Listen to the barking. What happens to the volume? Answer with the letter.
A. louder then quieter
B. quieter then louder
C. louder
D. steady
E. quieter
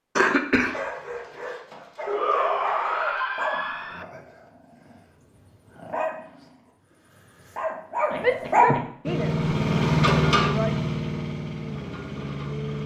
B.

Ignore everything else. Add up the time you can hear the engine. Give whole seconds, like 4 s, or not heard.
4 s.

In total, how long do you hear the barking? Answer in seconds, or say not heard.
8 s.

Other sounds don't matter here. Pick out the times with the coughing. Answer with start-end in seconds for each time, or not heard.
0.1-0.8, 8.1-8.9.